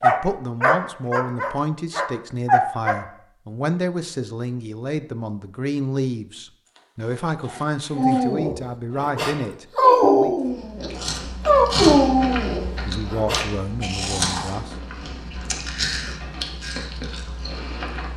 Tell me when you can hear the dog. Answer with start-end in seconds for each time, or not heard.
0.0-3.0, 8.0-13.5.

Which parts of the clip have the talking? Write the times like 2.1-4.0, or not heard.
0.0-10.3, 12.8-14.8.